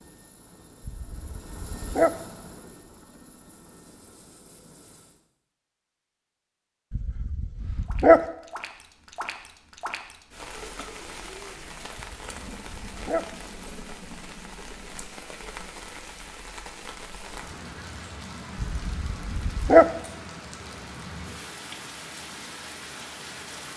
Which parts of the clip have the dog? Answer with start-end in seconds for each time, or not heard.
0.8-2.1, 6.9-8.2, 11.9-13.2, 18.6-19.9.